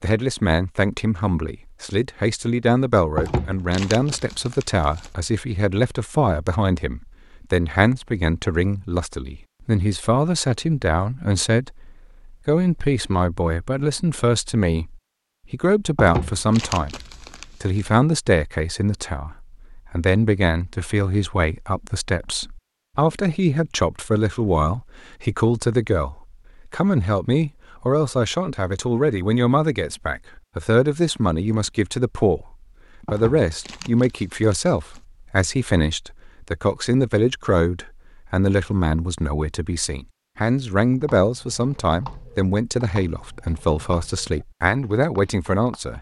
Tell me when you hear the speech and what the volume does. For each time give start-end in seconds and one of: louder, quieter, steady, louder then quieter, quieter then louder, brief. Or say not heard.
0.0-45.9 steady.